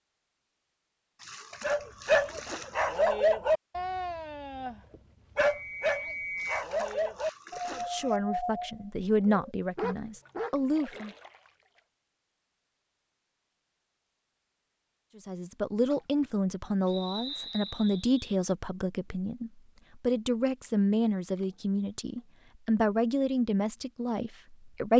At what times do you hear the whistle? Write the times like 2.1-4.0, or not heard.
5.3-6.7, 16.9-18.4.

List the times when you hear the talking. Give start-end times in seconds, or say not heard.
7.7-11.1, 15.2-24.9.